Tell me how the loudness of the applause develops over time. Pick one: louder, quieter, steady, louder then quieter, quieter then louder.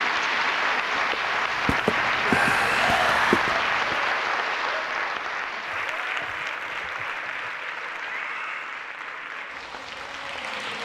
quieter.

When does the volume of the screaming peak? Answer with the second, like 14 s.
3 s.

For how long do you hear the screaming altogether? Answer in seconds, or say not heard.
2 s.